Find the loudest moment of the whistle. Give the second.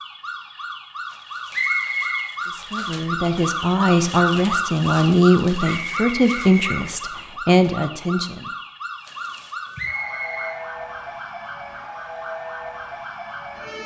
2 s.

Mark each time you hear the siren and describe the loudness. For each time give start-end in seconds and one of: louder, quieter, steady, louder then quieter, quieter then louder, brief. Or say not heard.
0.0-13.8 louder then quieter.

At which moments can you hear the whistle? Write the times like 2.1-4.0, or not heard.
1.5-2.3, 5.6-6.8, 9.8-10.6.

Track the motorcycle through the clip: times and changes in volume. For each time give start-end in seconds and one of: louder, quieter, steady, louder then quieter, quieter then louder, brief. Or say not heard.
not heard.